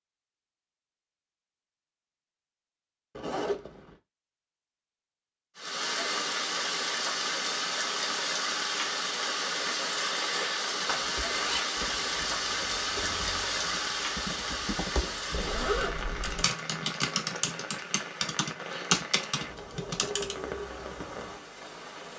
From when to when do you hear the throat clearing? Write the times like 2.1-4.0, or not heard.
not heard.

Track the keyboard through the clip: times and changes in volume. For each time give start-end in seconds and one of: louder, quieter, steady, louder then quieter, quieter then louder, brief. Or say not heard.
11.0-20.4 louder.